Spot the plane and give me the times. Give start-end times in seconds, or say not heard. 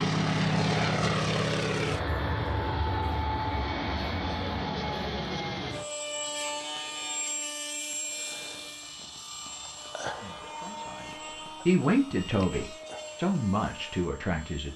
0.0-14.7.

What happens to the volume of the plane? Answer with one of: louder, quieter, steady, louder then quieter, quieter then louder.
quieter.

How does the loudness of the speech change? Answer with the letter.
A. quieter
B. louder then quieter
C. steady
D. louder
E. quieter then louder
B.